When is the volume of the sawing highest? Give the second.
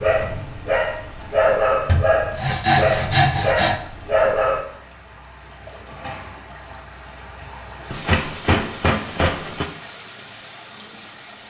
3 s.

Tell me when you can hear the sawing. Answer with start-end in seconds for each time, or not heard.
1.9-3.8, 7.9-9.7.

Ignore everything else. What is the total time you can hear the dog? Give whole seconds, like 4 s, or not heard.
5 s.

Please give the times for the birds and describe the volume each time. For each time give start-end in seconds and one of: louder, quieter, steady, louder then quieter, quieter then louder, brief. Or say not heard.
not heard.